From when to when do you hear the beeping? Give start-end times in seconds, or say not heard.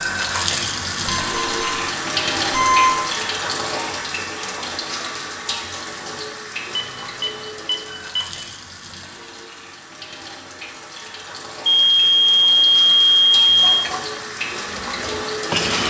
1.2-1.6, 2.5-3.0, 6.8-8.2, 11.7-13.9.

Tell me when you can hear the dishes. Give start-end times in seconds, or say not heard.
13.6-15.8.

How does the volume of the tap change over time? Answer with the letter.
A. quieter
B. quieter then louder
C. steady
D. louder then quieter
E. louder
B.